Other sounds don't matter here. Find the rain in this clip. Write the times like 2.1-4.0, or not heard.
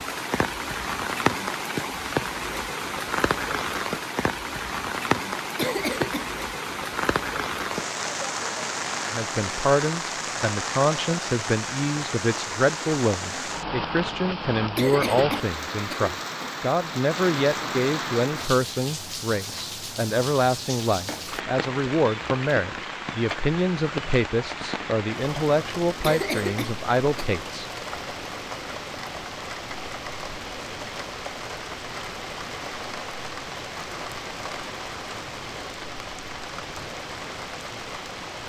0.0-38.4.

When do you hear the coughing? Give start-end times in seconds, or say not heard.
5.5-6.3, 14.8-16.6, 26.0-27.4.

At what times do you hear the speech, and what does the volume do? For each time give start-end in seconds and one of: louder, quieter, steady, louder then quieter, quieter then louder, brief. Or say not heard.
9.1-27.7 steady.